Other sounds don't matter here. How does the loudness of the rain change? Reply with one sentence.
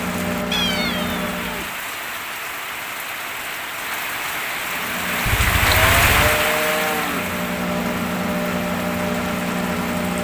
The loudness of the rain goes up, then down.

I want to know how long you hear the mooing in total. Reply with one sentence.
The mooing can be heard for 2 seconds in total.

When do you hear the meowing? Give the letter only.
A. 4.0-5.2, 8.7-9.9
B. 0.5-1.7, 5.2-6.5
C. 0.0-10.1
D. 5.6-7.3
B.